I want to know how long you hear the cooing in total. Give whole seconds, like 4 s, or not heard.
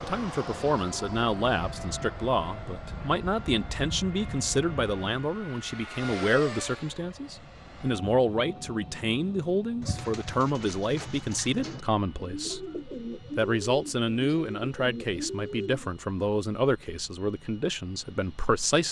6 s.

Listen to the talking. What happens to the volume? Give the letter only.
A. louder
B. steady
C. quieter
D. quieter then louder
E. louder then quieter
B.